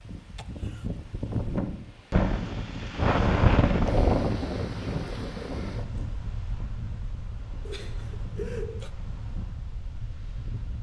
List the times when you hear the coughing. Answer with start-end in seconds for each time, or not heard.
0.3-1.0, 7.7-8.9.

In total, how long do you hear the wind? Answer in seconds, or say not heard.
11 s.